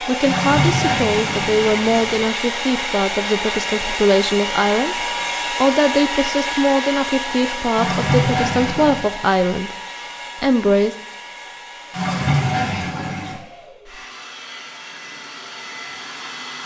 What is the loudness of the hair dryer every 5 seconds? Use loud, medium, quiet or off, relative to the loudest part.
loud, loud, quiet, medium.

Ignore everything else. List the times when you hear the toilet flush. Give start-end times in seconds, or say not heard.
0.2-2.2, 7.8-9.1, 11.9-13.4.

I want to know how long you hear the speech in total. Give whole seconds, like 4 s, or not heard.
10 s.